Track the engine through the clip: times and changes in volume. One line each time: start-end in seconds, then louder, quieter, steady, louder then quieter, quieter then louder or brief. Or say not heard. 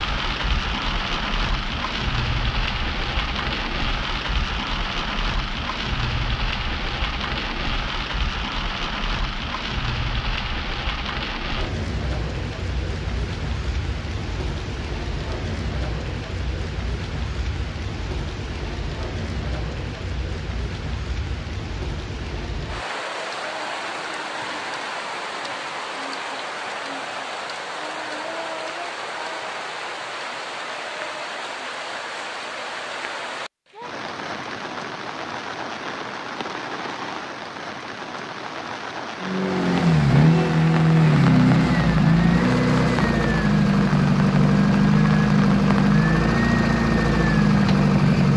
39.2-48.3 steady.